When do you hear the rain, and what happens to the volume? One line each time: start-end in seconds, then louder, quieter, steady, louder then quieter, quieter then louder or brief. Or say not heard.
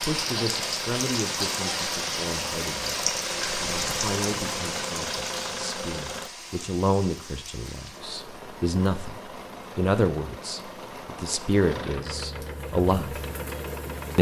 0.0-14.1 quieter.